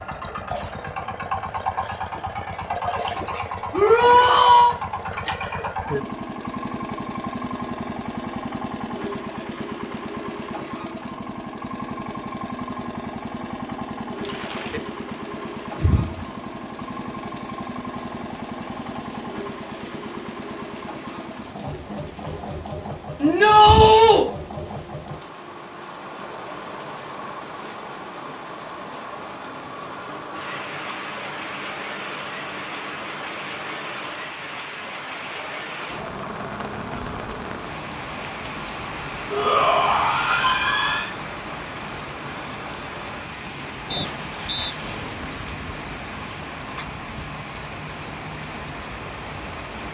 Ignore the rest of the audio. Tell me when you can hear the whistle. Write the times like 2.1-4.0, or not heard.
43.9-44.8.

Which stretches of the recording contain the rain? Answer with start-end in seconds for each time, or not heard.
14.2-49.8.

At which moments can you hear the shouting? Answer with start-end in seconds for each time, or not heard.
3.7-4.8, 23.2-24.2, 39.3-41.1.